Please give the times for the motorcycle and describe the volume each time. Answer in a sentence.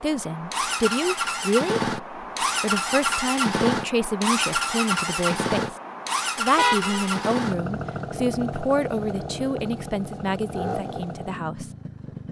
The motorcycle can be heard from 0.0 to 12.2 s, getting quieter.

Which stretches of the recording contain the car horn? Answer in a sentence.
The car horn can be heard from 6.5 to 7.2 s.